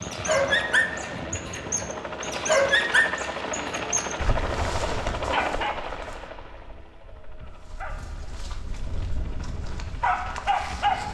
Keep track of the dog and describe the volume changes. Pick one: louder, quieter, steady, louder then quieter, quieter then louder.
quieter then louder.